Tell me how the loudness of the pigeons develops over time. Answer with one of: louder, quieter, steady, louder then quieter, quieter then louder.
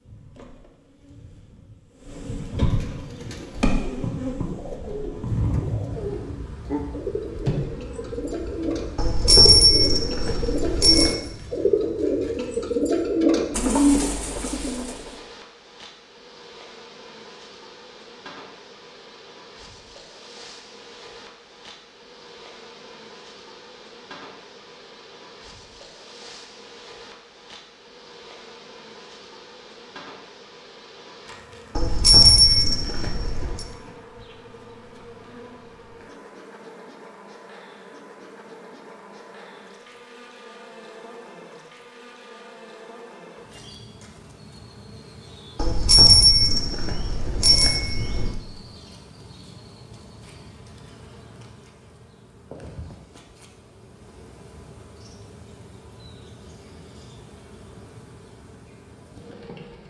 louder.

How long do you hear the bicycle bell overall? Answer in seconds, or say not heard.
7 s.